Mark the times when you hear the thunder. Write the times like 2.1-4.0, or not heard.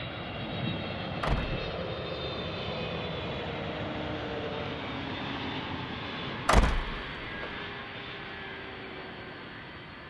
0.3-1.6.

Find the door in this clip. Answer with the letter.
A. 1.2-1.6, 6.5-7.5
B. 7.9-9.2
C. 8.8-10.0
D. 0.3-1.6
A.